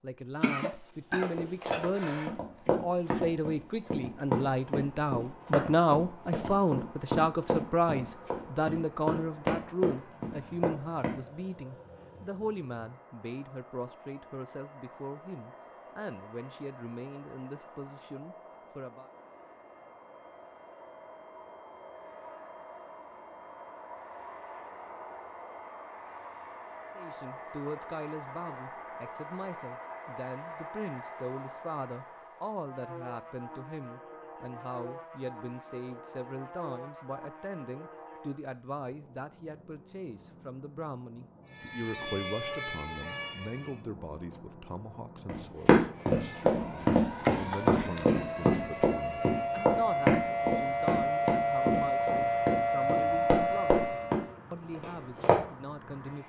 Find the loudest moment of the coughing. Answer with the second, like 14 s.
1 s.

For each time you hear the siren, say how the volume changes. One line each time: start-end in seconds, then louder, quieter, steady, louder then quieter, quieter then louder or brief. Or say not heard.
41.5-43.8 brief
45.9-54.4 louder.